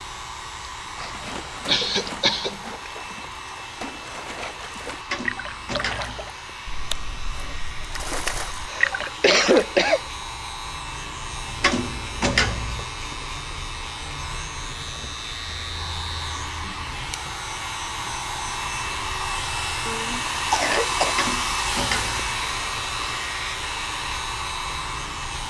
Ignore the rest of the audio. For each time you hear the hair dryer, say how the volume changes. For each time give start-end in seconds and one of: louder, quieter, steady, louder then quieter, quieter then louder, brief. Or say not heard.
0.0-25.4 louder.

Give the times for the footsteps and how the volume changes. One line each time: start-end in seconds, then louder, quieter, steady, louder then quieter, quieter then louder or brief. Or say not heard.
not heard.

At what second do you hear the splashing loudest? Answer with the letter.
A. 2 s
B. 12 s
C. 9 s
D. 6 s
C.